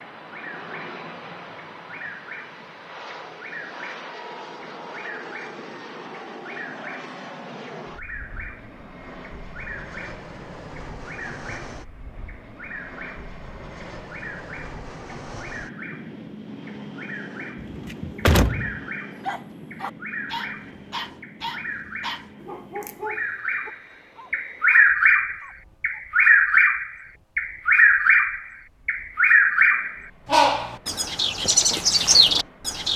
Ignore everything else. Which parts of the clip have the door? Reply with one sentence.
You can hear the door from 17.6 to 18.8 s.